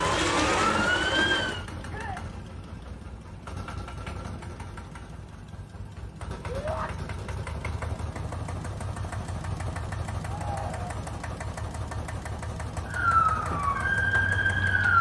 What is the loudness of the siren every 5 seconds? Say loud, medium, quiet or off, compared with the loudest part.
loud, off, loud.